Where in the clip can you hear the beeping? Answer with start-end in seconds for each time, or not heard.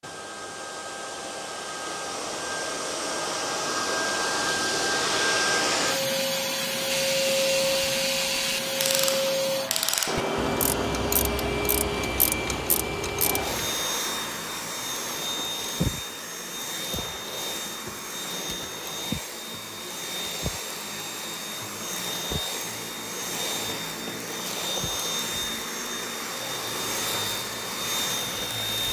not heard.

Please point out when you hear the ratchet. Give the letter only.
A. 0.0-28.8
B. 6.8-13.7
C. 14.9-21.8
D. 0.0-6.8
B.